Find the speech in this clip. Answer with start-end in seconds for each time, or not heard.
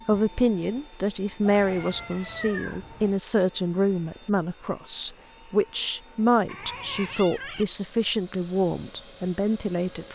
0.1-10.1.